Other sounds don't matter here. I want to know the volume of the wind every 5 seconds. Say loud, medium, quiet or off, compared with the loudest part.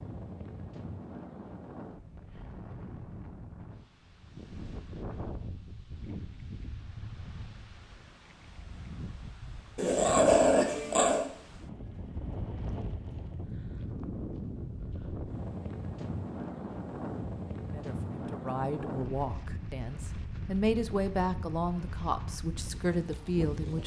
medium, medium, loud, loud, loud.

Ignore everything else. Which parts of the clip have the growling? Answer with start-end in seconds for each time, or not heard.
9.8-11.2.